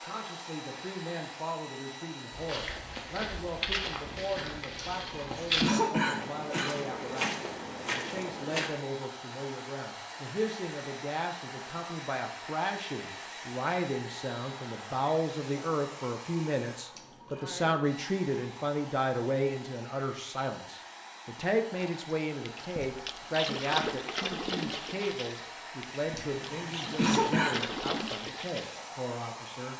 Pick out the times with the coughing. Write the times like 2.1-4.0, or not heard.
4.8-6.7, 16.9-17.6, 26.1-27.6.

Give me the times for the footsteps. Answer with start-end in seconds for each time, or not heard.
2.3-8.7.